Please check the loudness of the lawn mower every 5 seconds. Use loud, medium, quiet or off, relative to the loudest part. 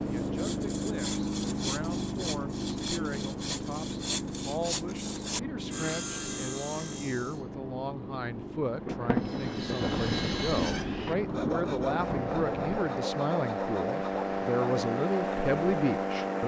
loud, medium, loud, loud.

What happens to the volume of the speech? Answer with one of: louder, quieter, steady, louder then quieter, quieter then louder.
louder.